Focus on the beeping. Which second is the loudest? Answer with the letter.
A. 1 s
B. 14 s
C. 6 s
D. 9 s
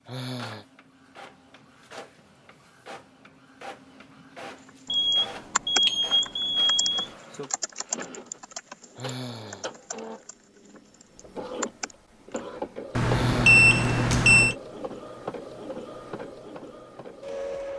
B.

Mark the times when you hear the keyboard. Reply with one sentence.
The keyboard can be heard from 4.7 to 12.4 s.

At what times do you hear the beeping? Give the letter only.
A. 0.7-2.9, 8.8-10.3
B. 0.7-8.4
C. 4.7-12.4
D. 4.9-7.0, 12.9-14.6
D.